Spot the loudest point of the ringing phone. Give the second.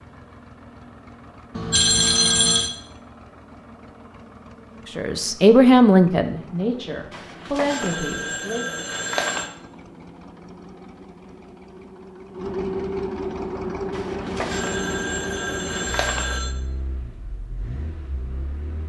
2 s.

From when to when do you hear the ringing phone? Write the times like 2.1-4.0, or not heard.
1.6-2.7, 7.1-9.5, 13.9-16.6.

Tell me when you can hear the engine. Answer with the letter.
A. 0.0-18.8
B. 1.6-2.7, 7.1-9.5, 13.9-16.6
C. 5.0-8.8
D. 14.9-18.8
A.